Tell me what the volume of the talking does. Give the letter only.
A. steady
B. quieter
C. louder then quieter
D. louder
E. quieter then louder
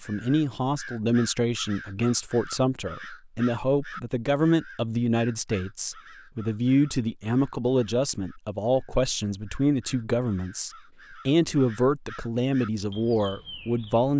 A.